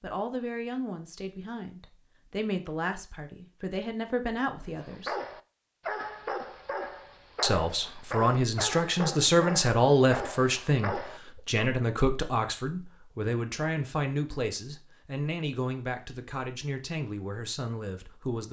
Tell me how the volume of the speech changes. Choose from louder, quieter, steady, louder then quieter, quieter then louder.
louder then quieter.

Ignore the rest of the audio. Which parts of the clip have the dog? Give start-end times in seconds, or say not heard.
4.7-11.4.